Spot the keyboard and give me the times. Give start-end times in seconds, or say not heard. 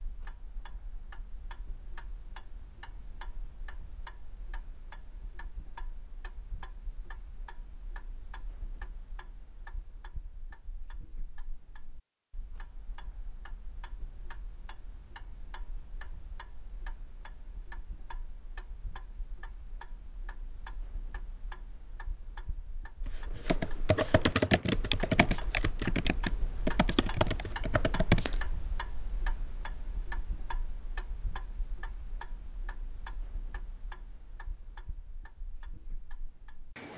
23.4-28.4.